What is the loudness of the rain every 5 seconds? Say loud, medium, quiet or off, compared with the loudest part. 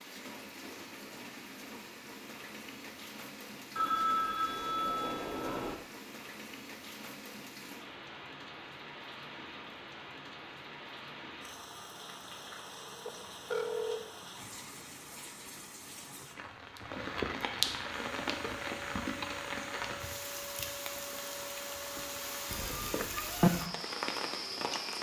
medium, medium, medium, loud, loud.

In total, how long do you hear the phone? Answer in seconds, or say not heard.
4 s.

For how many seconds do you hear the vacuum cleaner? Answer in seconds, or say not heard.
7 s.